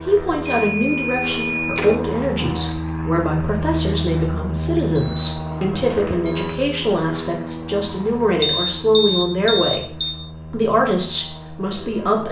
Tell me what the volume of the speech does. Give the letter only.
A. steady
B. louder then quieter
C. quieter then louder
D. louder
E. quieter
A.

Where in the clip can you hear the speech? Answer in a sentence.
The speech can be heard from 0.1 to 12.2 s.